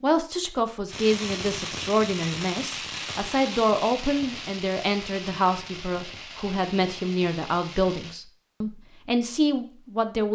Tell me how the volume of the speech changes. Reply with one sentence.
The loudness of the speech stays about the same.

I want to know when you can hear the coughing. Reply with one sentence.
The coughing can't be heard in this clip.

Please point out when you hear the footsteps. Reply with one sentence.
You can't hear the footsteps here.